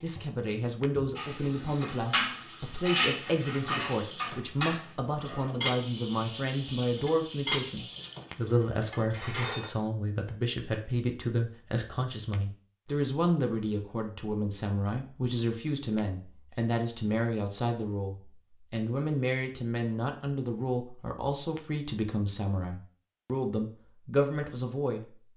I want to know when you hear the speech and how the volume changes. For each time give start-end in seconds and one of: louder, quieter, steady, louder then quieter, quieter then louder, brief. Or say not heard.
0.0-25.1 steady.